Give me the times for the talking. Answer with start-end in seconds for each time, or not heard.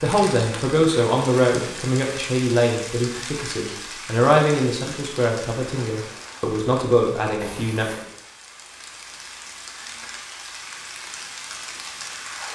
0.0-8.0.